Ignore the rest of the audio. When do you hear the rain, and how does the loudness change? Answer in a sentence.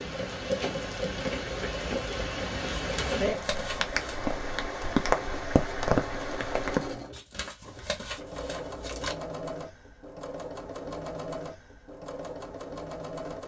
The rain can be heard from 0.0 to 7.0 s, getting louder.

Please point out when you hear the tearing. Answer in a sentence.
You can hear the tearing from 2.8 to 4.2 s and from 7.1 to 9.2 s.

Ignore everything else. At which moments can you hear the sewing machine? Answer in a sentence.
The sewing machine can be heard from 0.0 to 13.4 s.